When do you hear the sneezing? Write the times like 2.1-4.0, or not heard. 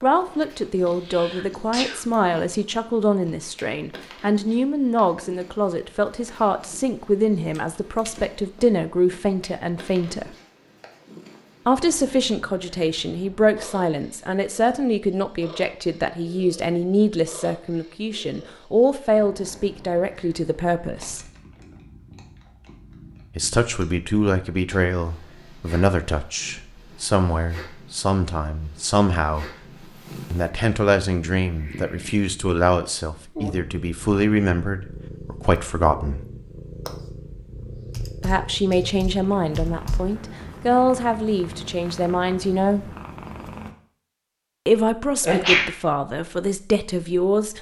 0.8-2.0, 45.2-45.6.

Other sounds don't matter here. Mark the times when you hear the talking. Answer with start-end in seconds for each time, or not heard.
0.0-10.3, 11.7-21.2, 23.4-29.5, 30.3-36.2, 38.2-42.9, 44.6-47.5.